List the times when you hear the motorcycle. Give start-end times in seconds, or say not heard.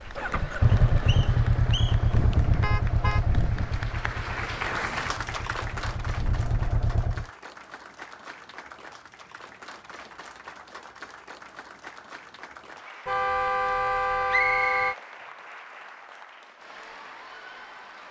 0.0-7.2.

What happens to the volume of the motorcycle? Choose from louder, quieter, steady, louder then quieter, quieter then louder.
quieter then louder.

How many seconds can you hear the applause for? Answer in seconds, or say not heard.
18 s.